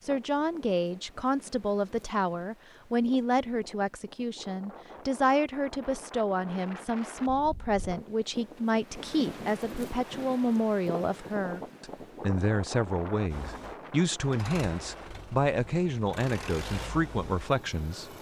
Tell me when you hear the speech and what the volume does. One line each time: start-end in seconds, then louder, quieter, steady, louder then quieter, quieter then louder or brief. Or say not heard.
0.0-18.1 steady.